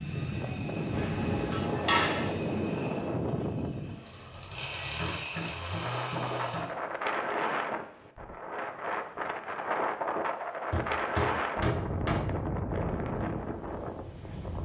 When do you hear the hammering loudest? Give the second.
2 s.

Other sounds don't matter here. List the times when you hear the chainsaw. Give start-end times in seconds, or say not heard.
0.0-6.7.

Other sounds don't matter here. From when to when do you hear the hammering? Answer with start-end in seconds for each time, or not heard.
0.9-2.4, 5.0-6.8, 10.7-12.2.